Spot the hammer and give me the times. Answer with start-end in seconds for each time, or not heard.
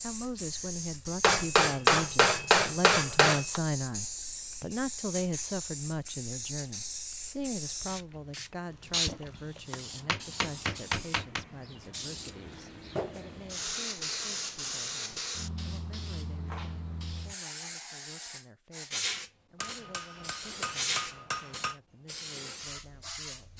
1.2-3.6, 9.1-11.4, 19.6-21.8.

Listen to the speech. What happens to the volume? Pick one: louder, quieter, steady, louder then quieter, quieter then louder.
quieter.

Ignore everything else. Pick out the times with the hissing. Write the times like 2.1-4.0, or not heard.
0.0-23.5.